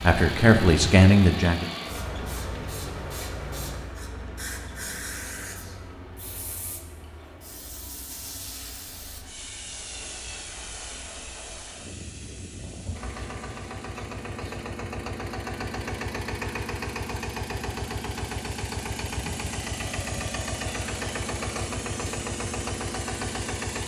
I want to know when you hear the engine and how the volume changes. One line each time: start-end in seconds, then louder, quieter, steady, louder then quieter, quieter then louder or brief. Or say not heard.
0.0-23.8 quieter then louder.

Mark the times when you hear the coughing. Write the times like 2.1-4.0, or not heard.
not heard.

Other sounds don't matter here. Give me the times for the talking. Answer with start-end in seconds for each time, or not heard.
0.0-1.6.